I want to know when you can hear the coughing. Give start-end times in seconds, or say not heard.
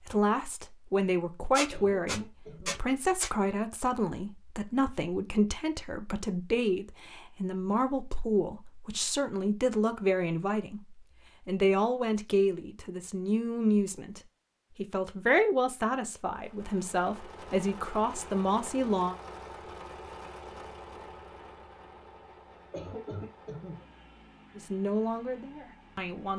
1.7-2.8, 22.7-23.9.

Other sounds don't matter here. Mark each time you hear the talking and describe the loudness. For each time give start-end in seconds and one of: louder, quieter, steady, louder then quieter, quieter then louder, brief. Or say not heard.
0.0-19.1 steady
24.6-26.3 brief.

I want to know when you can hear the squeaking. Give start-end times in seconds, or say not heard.
1.6-3.3.